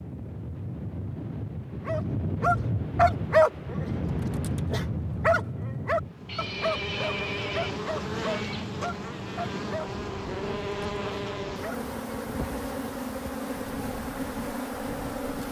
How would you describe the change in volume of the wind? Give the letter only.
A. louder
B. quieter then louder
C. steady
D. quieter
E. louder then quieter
D.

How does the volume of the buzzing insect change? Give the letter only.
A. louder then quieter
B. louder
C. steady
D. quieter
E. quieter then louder
C.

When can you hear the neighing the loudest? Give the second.
7 s.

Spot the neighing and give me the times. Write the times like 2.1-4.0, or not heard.
6.2-8.7.